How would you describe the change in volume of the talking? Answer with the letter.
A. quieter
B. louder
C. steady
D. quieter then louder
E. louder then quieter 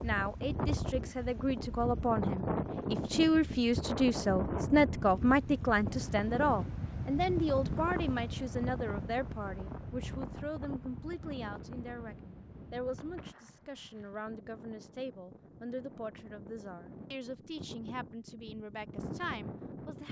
A.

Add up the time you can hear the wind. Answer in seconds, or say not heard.
20 s.